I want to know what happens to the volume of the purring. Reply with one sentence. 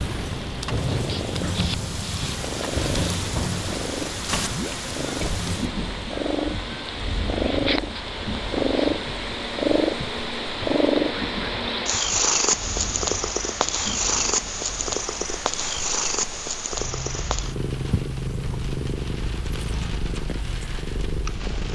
The volume of the purring goes up, then down.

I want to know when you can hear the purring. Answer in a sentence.
You can hear the purring from 0.0 to 21.6 s.